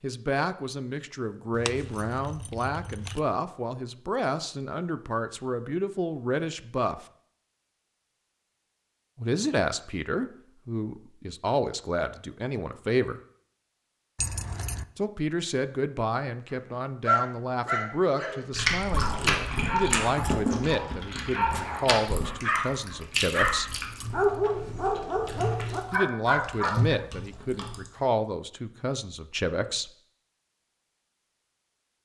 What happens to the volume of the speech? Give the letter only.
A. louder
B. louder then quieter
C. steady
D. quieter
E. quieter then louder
C.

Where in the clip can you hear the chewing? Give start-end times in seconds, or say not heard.
18.5-27.9.